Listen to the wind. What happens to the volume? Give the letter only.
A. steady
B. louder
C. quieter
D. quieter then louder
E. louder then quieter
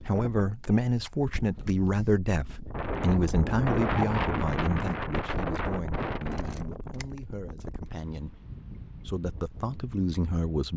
E.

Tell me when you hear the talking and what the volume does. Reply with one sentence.
You can hear the talking from 0.0 to 10.7 s, getting quieter then louder.